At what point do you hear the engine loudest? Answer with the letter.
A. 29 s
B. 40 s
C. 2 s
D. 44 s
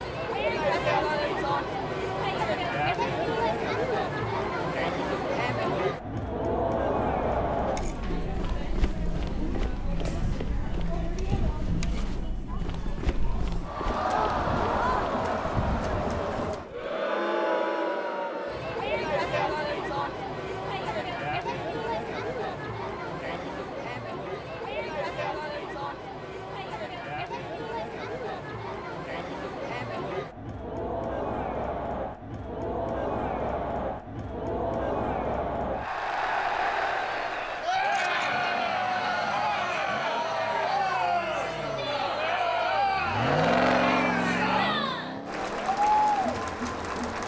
D.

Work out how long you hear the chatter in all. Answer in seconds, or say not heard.
47 s.